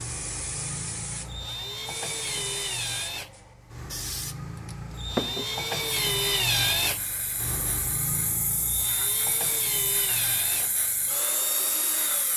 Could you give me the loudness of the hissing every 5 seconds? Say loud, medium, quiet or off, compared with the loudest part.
medium, loud, loud.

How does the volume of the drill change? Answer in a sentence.
The loudness of the drill goes up, then down.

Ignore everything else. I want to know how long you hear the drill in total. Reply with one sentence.
You can hear the drill for 12 seconds altogether.